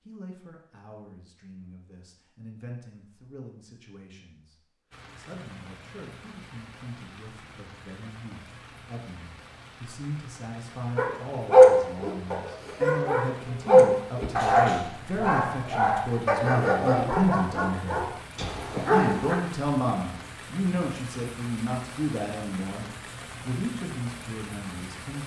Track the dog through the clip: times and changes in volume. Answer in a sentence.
The dog can be heard from 10.9 to 19.4 s, getting quieter.